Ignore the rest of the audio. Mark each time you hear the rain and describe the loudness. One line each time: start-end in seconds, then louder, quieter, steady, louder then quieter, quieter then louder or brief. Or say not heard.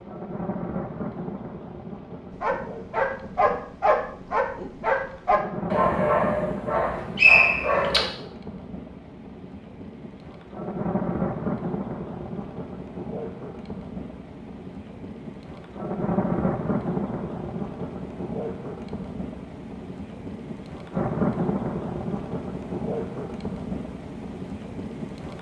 0.0-25.3 louder.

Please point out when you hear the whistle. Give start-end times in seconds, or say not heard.
6.8-7.8.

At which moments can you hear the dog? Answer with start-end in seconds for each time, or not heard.
2.4-8.1.